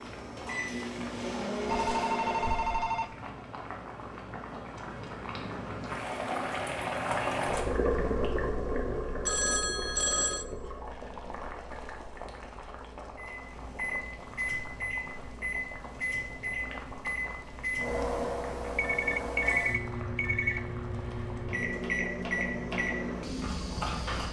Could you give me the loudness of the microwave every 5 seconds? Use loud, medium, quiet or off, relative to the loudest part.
loud, off, loud, loud, loud.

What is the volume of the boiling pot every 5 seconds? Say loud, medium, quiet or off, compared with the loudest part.
medium, loud, medium, quiet, quiet.